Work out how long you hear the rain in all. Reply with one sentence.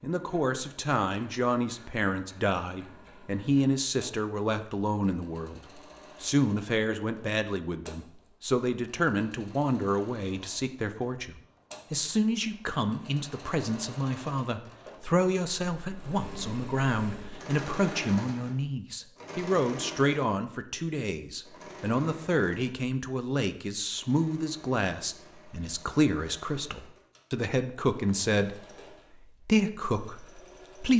You can't hear the rain here.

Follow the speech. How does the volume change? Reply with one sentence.
The loudness of the speech stays about the same.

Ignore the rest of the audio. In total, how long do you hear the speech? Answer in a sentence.
The speech can be heard for 30 seconds in total.